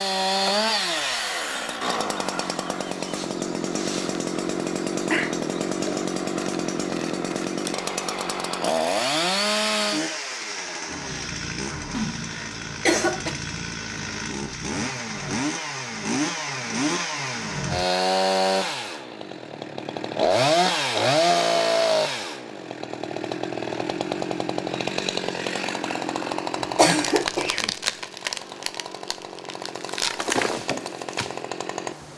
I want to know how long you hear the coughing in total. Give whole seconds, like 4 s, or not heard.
3 s.